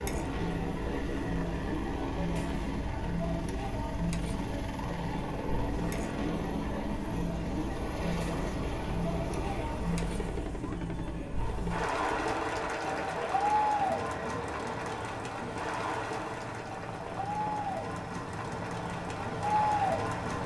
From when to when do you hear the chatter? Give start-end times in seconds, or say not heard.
0.0-20.4.